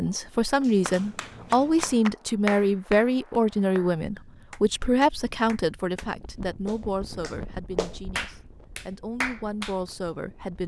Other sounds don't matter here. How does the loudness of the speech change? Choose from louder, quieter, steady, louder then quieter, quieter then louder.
quieter.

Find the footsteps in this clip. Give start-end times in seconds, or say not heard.
not heard.